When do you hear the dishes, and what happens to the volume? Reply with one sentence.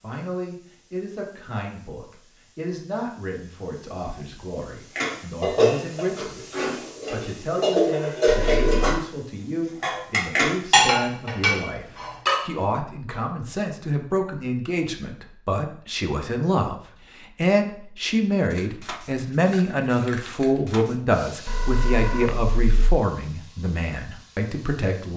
The dishes can be heard from 5.0 to 9.0 s, getting quieter then louder; and briefly from 9.8 to 12.4 s.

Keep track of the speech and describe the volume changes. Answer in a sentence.
The loudness of the speech goes up.